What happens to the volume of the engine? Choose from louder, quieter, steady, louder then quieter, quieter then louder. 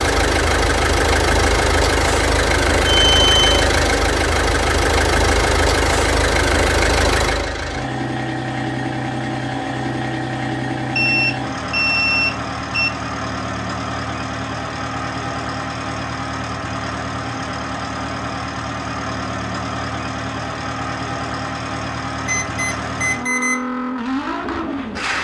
quieter.